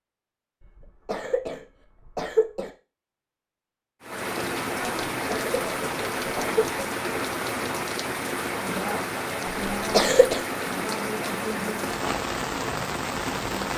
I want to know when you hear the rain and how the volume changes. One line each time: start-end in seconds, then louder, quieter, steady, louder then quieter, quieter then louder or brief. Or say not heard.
4.0-13.7 steady.